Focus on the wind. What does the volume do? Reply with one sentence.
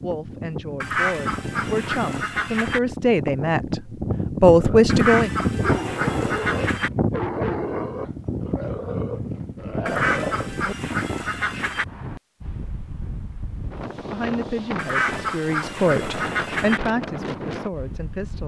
The volume of the wind goes up, then down.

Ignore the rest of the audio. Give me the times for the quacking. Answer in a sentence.
The quacking can be heard from 0.8 to 2.8 s, from 4.8 to 6.9 s, from 9.8 to 11.8 s and from 14.8 to 16.8 s.